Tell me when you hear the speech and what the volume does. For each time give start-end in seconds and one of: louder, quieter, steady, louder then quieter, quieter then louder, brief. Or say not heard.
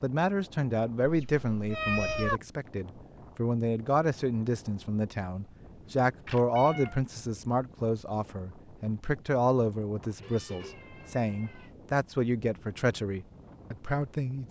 0.0-14.4 steady.